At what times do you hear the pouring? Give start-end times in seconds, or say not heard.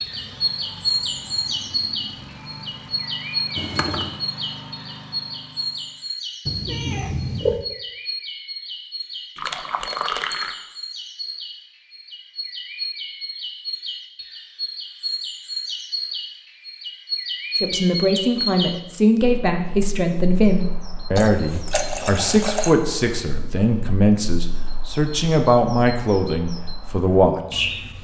3.5-4.2, 9.3-10.6, 21.1-22.8.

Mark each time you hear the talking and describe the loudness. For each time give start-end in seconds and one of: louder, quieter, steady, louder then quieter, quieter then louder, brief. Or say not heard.
17.6-28.0 steady.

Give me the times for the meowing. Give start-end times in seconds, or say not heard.
6.5-7.7.